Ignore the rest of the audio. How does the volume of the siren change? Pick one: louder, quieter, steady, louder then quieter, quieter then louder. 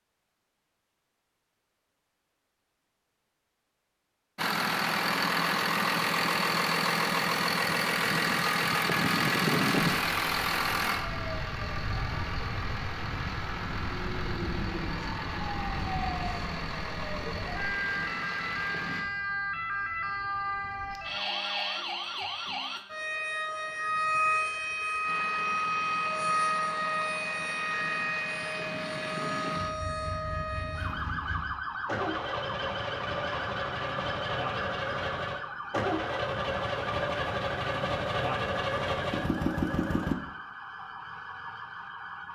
louder then quieter.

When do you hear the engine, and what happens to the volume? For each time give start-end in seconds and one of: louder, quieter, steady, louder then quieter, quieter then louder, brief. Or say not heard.
4.3-19.1 quieter
25.1-40.1 louder.